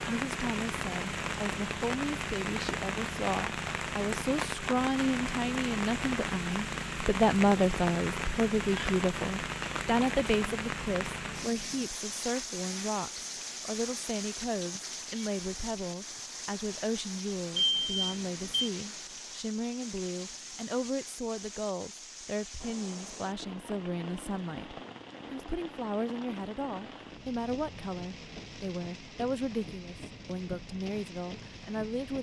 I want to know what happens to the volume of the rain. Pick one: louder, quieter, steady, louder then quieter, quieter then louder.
quieter.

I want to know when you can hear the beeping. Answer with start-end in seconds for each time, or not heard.
17.6-18.7.